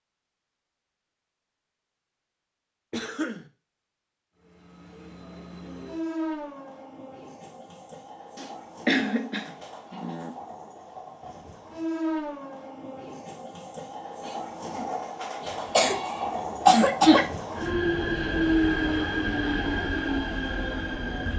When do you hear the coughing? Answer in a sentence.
The coughing can be heard from 2.9 to 3.5 s, from 8.3 to 10.3 s and from 15.7 to 17.2 s.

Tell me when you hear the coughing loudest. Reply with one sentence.
The loudest moment of the coughing is at 17 seconds.